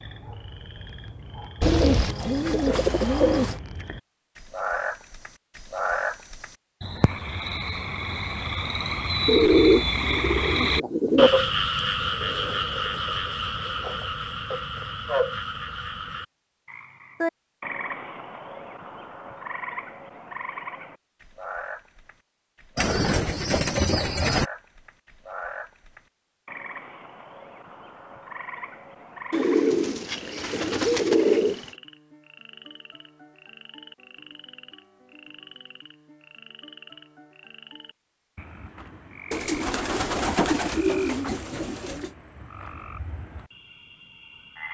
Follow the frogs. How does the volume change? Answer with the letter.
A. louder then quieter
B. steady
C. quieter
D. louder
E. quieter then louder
A.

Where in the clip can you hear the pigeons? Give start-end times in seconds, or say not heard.
1.6-3.6, 9.2-11.3, 22.8-24.4, 29.3-31.6, 39.3-42.1.